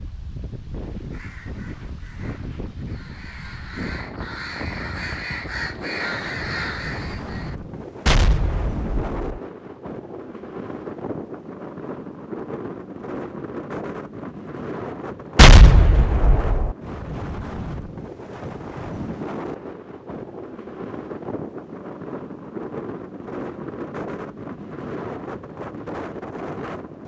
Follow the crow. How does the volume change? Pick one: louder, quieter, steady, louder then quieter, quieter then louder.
louder.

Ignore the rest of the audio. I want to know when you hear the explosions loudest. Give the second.
16 s.